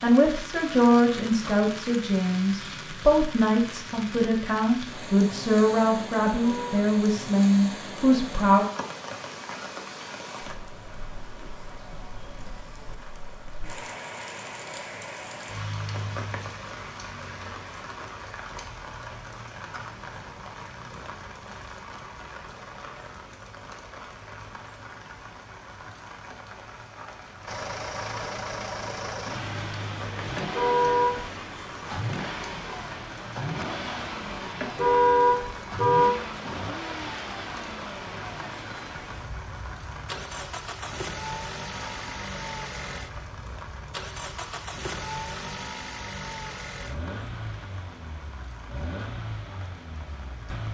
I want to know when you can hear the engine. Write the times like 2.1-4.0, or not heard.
27.4-50.6.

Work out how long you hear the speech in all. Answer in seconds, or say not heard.
9 s.